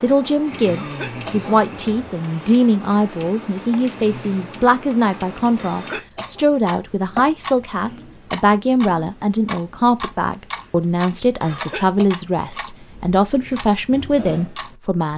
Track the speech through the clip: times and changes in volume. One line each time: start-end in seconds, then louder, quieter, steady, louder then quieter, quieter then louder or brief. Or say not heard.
0.0-15.1 steady.